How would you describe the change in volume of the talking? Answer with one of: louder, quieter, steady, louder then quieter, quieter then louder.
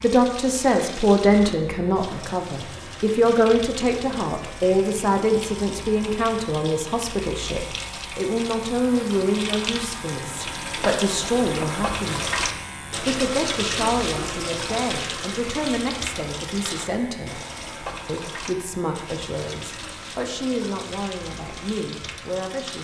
quieter.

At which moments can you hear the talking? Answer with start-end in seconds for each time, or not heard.
0.0-12.2, 13.0-17.4, 18.1-22.7.